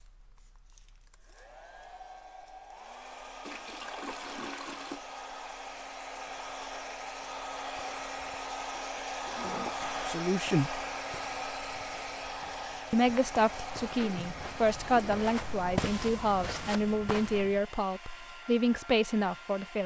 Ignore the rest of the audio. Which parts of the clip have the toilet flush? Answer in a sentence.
The toilet flush can be heard from 3.5 to 5.0 s, from 7.8 to 9.8 s and from 14.0 to 15.2 s.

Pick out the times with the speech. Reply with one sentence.
The speech can be heard from 10.1 to 10.8 s and from 12.9 to 19.8 s.